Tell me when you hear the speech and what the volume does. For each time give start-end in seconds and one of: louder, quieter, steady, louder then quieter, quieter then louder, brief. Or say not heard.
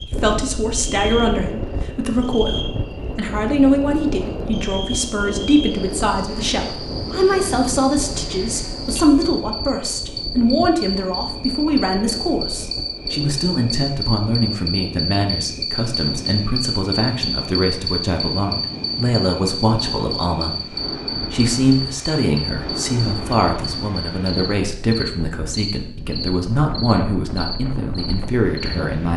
0.1-29.1 steady.